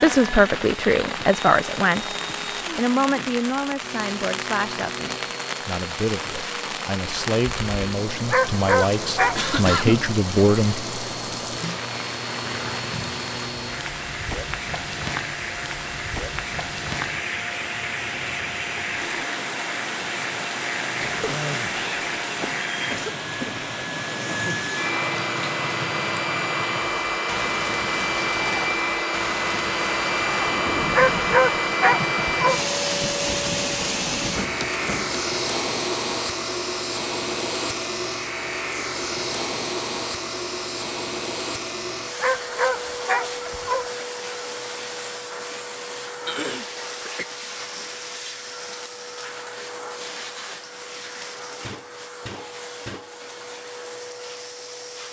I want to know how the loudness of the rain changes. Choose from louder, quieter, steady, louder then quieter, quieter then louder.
steady.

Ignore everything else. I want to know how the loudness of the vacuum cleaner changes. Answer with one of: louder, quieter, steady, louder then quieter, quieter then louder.
louder then quieter.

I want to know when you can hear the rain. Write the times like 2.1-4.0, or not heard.
0.0-35.2.